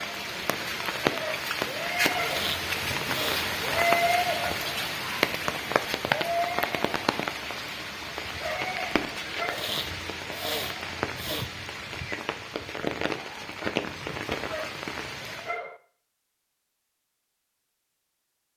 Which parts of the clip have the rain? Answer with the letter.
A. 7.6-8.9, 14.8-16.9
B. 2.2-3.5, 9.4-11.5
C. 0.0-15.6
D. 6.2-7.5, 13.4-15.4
C.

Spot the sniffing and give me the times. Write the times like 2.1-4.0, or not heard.
2.2-3.5, 9.4-11.5.